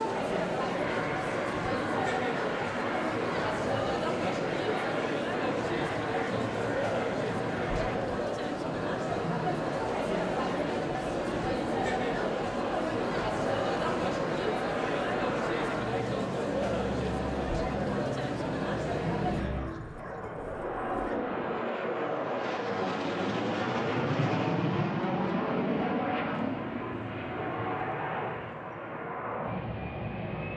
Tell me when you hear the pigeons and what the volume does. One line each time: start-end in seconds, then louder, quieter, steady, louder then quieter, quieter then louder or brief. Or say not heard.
not heard.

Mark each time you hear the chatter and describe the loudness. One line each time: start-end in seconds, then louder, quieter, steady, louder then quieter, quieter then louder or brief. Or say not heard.
0.0-19.4 steady.